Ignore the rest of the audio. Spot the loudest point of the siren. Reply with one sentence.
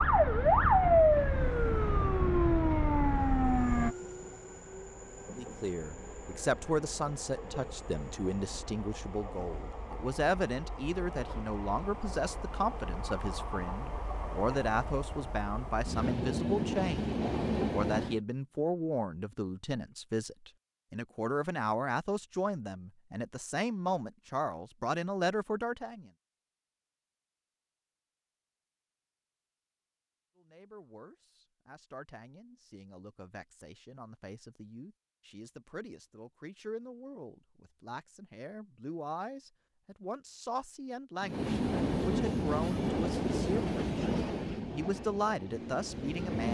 The volume of the siren peaks at 1 second.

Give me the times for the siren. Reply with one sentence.
The siren can be heard from 0.0 to 4.0 s.